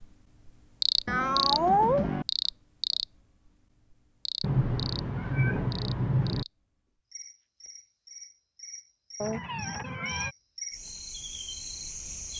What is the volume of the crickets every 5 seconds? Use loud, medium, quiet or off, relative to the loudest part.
loud, quiet, medium.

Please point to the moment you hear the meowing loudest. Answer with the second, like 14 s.
2 s.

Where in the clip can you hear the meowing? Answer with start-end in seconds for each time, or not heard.
1.1-2.2, 4.4-6.5, 9.2-10.3.